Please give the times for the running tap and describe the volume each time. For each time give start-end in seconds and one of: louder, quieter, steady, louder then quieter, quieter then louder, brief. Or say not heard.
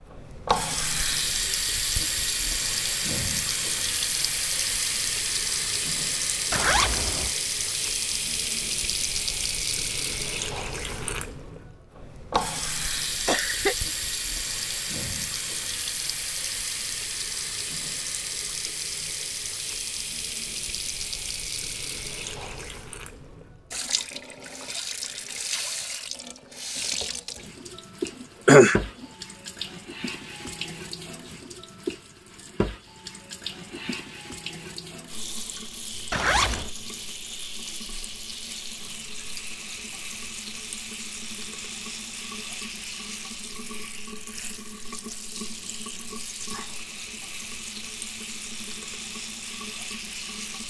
0.0-50.6 quieter.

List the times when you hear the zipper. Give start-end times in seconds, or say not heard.
6.5-7.3, 36.1-36.7.